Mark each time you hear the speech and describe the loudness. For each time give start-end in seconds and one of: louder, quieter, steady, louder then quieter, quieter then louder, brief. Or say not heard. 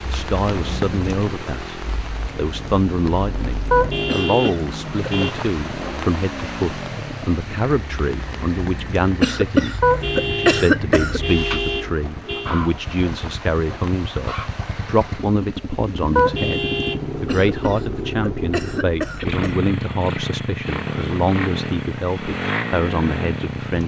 0.1-1.8 brief
2.4-23.8 steady.